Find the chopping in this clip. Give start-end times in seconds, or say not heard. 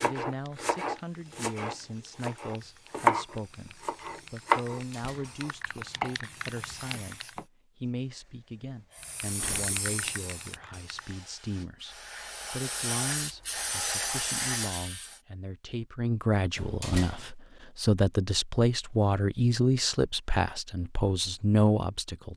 0.0-7.5.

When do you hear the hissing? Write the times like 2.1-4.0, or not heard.
0.2-7.5, 8.9-15.2.